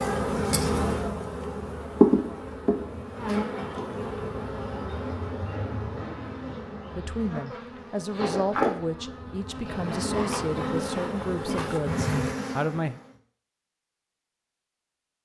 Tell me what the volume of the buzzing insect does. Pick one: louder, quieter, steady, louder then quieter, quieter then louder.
quieter then louder.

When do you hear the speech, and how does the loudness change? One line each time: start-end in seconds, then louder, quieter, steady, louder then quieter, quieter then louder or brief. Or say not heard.
6.9-13.0 steady.